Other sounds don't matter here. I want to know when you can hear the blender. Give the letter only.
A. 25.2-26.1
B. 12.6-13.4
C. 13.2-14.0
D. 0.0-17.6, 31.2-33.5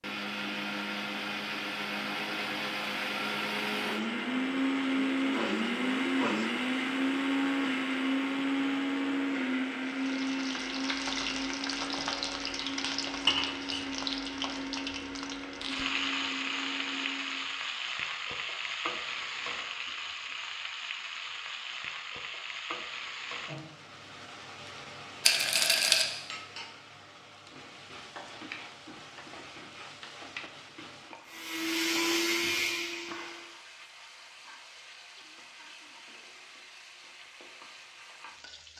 D.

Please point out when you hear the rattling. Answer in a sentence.
The rattling can be heard from 25.2 to 26.1 s.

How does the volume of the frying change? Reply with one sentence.
The volume of the frying goes down.